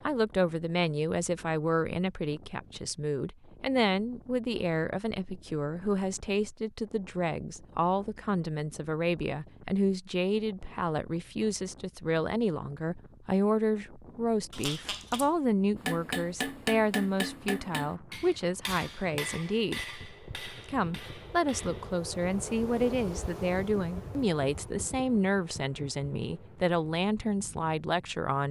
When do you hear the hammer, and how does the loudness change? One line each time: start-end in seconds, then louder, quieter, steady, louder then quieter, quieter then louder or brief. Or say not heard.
15.8-22.0 quieter.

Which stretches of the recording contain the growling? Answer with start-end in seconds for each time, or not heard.
14.5-15.3.